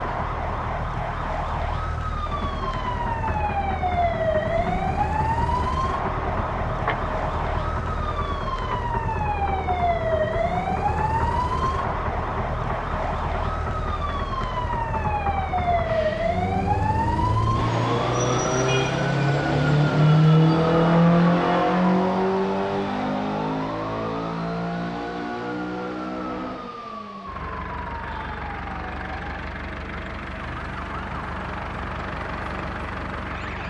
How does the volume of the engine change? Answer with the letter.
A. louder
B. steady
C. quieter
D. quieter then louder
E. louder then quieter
E.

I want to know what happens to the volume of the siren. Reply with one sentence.
The loudness of the siren goes down.